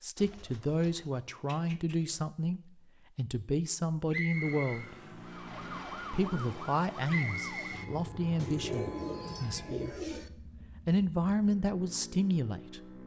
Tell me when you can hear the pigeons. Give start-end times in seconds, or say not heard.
0.1-2.2, 8.3-10.3.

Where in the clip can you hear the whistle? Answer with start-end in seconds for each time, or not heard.
4.1-4.8, 7.0-7.9.